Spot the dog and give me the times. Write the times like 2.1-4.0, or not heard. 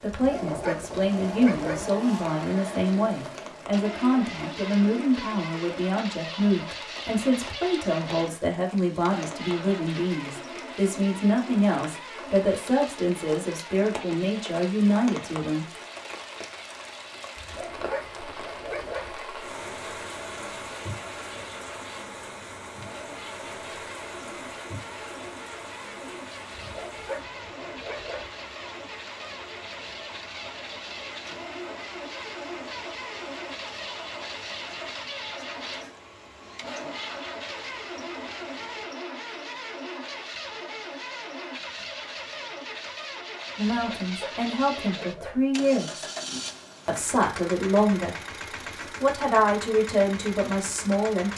0.1-1.9, 17.4-19.1, 26.6-28.3, 43.7-45.4.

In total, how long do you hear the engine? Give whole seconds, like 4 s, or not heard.
51 s.